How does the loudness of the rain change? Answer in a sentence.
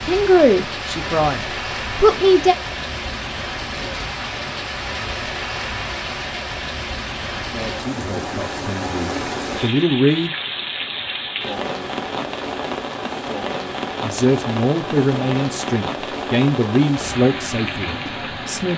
The loudness of the rain stays about the same.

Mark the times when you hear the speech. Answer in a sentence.
You can hear the speech from 0.0 to 2.5 s, from 7.3 to 10.3 s and from 14.0 to 18.7 s.